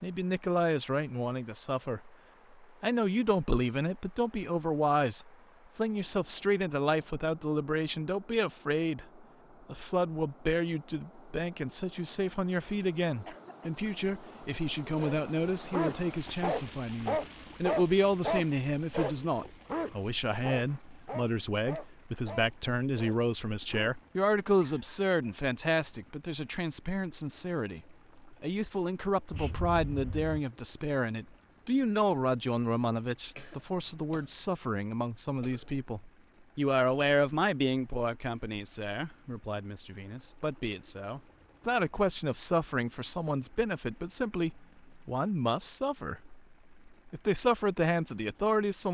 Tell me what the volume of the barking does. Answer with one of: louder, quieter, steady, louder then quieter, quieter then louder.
quieter.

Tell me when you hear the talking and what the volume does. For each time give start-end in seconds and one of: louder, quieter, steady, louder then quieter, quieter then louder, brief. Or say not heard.
0.0-48.8 steady.